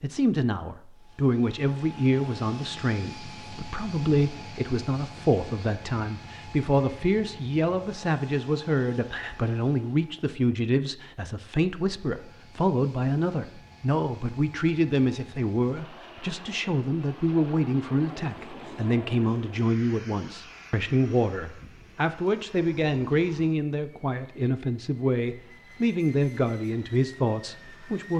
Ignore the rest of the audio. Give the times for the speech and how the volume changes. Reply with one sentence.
You can hear the speech from 0.0 to 28.1 s, at a steady volume.